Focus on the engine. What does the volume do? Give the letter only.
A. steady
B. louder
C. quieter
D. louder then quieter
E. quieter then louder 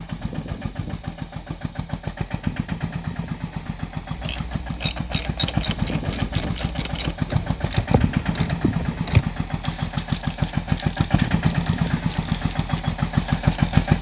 B.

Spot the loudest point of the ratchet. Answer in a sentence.
The loudest moment of the ratchet is at 9 seconds.